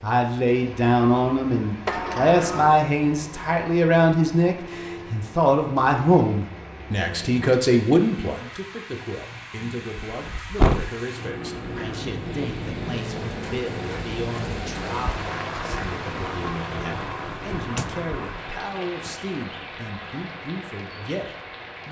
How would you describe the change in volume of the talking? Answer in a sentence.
The loudness of the talking goes down.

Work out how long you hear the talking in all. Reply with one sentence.
You can hear the talking for 22 seconds altogether.